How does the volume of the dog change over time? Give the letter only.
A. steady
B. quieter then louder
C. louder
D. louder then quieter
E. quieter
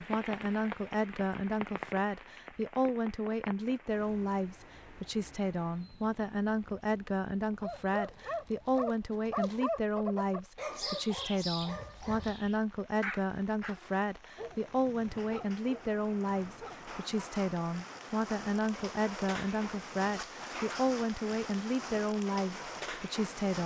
E.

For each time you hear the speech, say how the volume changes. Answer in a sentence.
The speech can be heard from 0.0 to 23.6 s, at a steady volume.